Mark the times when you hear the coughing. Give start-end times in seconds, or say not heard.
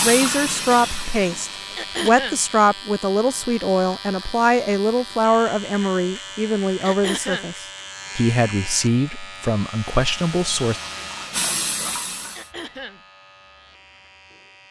1.8-2.4, 6.8-7.5, 12.3-13.0.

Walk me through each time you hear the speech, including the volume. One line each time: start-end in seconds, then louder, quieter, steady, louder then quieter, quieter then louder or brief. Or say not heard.
0.0-10.8 steady.